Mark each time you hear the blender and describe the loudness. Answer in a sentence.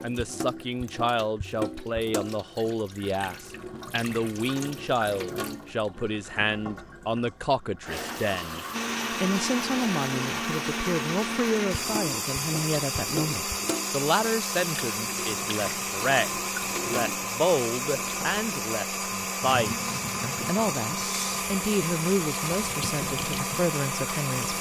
The blender can be heard from 8.7 to 24.5 s, at a steady volume.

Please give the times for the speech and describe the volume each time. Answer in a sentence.
The speech can be heard from 0.0 to 24.5 s, at a steady volume.